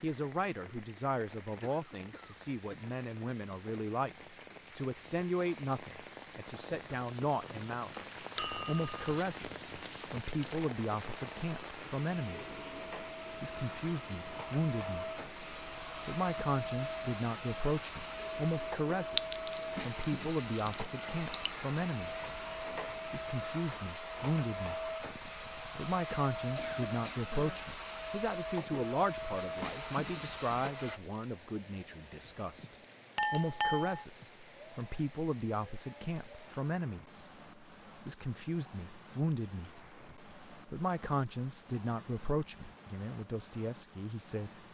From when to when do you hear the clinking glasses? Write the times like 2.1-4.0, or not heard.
8.3-9.1, 19.1-21.5, 33.1-34.0.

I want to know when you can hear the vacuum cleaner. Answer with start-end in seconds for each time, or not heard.
11.1-31.0.